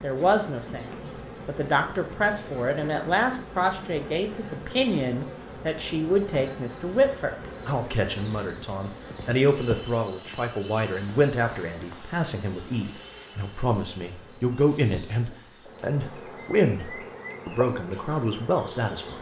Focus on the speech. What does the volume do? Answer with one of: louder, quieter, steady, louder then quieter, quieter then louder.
steady.